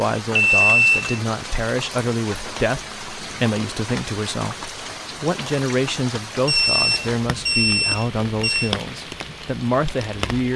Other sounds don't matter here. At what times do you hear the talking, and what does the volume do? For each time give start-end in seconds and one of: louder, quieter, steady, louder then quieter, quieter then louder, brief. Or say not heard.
0.0-10.5 steady.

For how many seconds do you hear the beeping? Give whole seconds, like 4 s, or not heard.
3 s.